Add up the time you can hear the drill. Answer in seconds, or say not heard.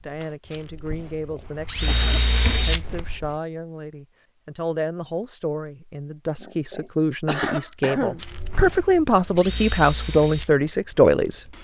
7 s.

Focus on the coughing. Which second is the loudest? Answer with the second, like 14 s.
8 s.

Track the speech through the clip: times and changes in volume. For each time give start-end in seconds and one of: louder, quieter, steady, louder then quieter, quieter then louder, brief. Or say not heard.
0.0-11.4 louder.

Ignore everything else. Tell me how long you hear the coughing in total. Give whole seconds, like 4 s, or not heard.
3 s.